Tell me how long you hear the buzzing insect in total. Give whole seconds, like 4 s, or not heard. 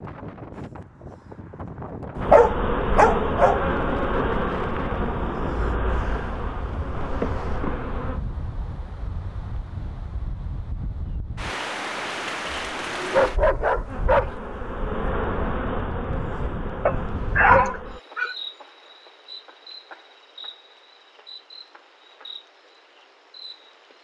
16 s.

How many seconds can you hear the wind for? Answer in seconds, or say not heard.
18 s.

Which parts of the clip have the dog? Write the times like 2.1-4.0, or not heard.
2.3-3.6, 13.1-14.3, 16.9-18.4.